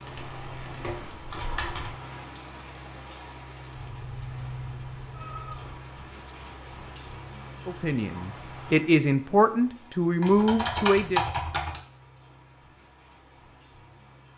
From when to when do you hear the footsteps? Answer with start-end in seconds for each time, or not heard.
not heard.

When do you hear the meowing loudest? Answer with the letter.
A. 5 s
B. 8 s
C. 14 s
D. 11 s
A.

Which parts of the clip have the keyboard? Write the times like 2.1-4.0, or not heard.
0.1-1.9, 6.2-8.0, 10.2-11.8.